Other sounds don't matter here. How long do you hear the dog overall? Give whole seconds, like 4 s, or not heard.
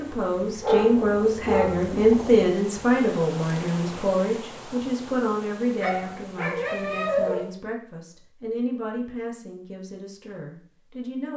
3 s.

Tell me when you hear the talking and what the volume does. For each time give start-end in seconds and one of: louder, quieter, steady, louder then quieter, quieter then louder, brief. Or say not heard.
0.0-11.3 quieter.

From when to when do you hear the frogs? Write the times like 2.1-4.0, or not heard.
not heard.